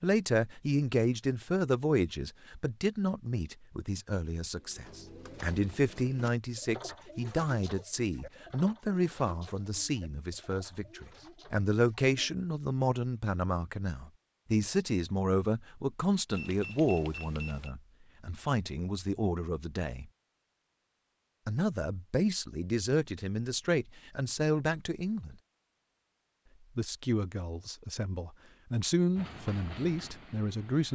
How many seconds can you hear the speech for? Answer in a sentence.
You can hear the speech for 28 seconds altogether.